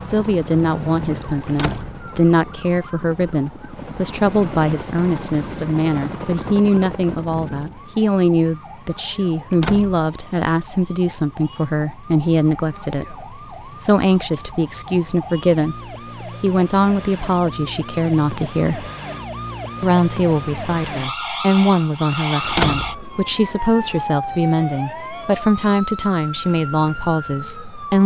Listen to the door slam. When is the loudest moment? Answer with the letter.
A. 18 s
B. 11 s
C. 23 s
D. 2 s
C.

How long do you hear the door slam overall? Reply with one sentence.
The door slam can be heard for 2 seconds in total.